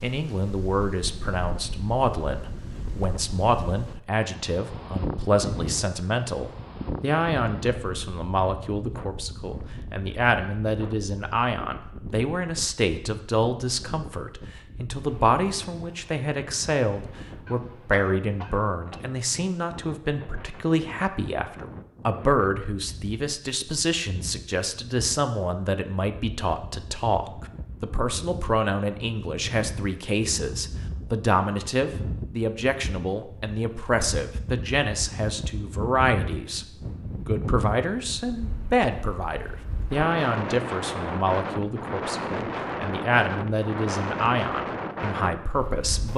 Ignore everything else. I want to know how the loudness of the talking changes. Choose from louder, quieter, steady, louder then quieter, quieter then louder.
steady.